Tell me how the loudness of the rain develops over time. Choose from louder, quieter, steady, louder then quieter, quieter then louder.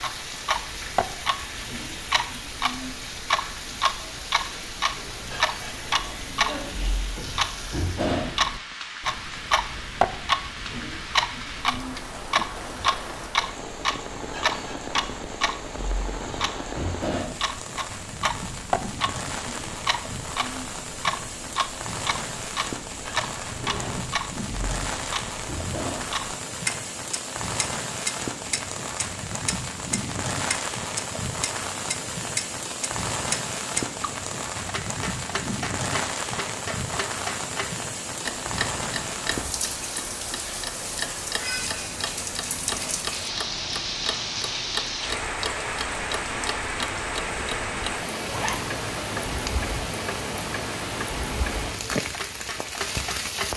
louder.